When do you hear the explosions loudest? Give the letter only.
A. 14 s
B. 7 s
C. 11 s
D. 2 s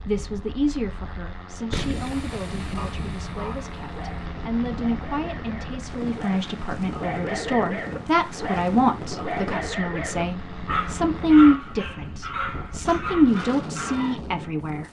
D.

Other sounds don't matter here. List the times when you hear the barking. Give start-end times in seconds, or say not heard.
2.8-14.2.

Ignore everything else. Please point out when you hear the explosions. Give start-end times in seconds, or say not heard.
1.7-4.0.